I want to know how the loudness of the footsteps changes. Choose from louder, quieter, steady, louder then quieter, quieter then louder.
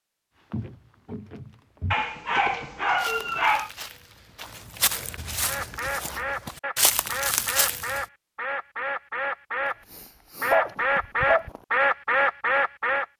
louder.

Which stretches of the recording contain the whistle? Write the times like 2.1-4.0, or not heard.
not heard.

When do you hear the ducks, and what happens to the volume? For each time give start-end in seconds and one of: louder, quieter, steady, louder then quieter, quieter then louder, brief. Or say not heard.
5.4-9.8 steady
10.4-13.1 brief.